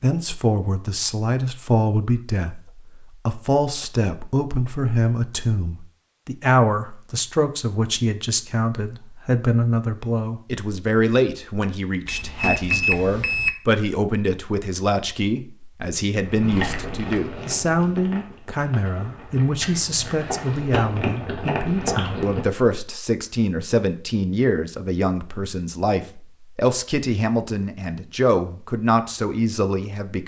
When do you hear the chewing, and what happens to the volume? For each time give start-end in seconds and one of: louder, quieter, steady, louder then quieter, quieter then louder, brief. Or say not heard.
16.2-22.6 quieter then louder.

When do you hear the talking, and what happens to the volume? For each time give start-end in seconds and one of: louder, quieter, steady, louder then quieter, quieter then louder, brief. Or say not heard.
0.0-30.2 steady.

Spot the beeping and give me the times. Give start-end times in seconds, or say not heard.
12.1-13.6.